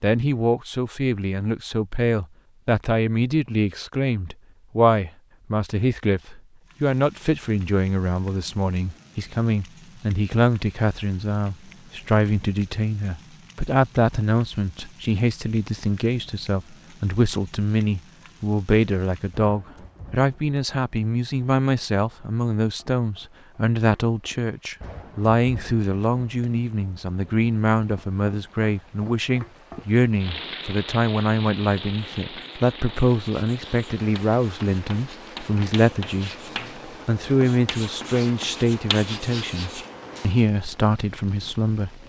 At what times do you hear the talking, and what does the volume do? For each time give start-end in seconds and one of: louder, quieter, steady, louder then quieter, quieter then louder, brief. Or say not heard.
0.0-42.0 steady.